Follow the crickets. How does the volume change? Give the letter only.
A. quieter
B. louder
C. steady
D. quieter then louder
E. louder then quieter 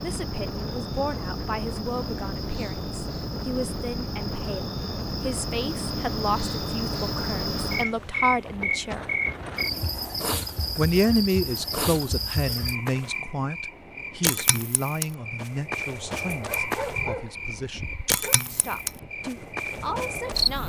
B.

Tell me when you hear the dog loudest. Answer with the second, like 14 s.
17 s.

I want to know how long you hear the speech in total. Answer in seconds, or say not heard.
18 s.